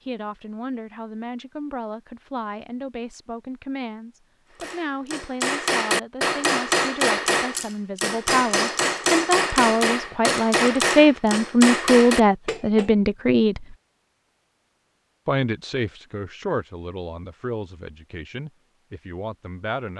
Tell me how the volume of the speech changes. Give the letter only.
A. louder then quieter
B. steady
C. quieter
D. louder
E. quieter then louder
A.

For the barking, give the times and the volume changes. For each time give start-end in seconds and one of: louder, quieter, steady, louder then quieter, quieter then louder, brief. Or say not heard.
not heard.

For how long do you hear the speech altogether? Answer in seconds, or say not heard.
18 s.